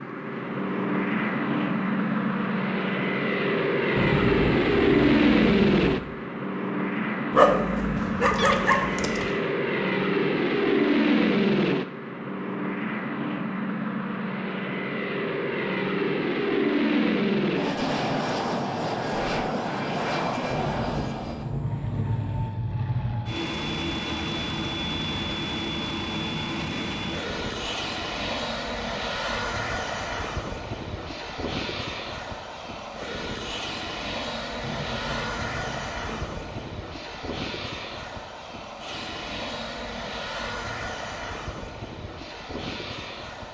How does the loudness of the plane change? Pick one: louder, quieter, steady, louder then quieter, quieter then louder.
quieter.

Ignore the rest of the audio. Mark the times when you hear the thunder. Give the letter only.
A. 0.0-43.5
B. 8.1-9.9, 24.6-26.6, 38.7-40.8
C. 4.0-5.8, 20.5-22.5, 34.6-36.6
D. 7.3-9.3
C.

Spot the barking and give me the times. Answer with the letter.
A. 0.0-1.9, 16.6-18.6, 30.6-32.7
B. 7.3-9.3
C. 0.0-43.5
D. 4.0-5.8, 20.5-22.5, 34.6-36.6
B.